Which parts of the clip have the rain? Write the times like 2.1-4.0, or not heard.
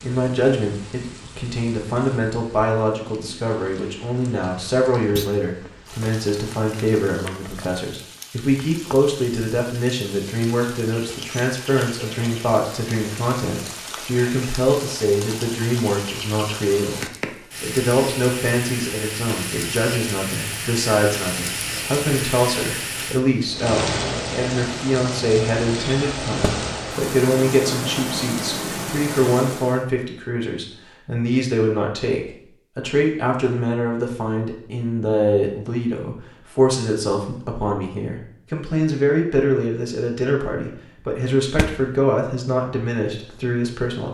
0.0-29.9.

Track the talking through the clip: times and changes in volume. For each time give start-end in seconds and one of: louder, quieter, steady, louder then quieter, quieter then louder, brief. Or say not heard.
0.0-44.0 steady.